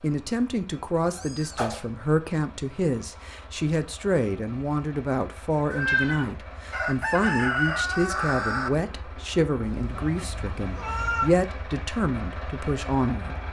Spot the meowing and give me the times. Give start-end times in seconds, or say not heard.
1.1-1.9, 5.7-6.3, 9.7-11.3.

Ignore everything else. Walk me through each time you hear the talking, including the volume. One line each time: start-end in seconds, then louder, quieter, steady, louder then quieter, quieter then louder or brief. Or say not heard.
0.0-13.3 steady.